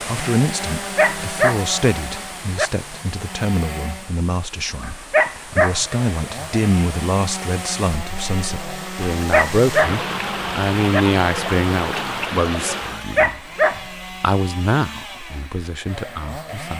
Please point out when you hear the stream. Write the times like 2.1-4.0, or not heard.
0.0-13.1.